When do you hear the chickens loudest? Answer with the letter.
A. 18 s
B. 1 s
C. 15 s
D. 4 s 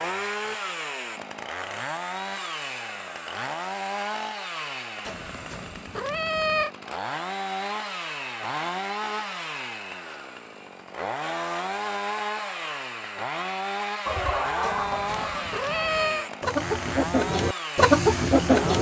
A.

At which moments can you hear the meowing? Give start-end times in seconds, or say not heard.
5.0-6.7, 14.6-16.3.